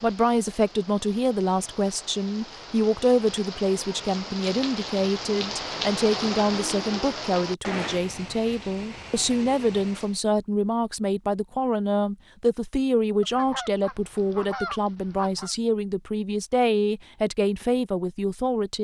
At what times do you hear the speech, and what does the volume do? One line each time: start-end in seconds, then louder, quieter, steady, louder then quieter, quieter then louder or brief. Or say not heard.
0.0-18.8 steady.